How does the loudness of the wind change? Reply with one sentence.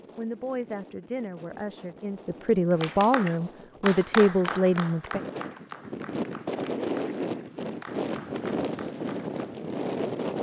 The loudness of the wind goes up.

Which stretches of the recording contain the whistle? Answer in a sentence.
You can't hear the whistle here.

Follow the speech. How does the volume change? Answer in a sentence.
The volume of the speech goes up.